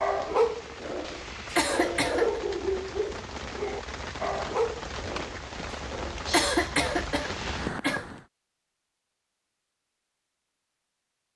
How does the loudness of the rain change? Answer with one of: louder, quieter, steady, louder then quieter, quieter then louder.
louder.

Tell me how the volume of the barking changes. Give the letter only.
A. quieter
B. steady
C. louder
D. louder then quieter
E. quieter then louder
A.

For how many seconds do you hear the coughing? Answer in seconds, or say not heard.
3 s.